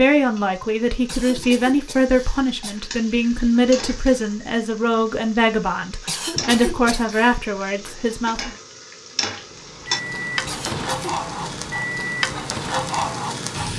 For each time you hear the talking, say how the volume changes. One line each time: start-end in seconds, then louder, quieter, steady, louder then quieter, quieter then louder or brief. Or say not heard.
0.0-8.5 steady.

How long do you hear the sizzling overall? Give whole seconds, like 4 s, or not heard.
14 s.